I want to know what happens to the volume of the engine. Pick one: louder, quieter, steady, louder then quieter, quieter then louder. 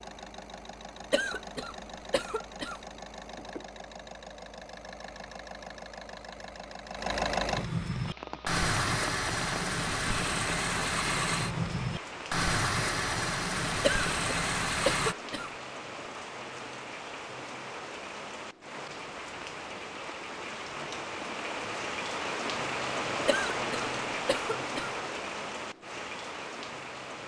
louder.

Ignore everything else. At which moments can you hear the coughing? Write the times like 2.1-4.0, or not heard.
1.1-2.8, 13.8-15.5, 23.2-24.9.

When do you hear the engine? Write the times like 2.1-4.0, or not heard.
0.0-15.2.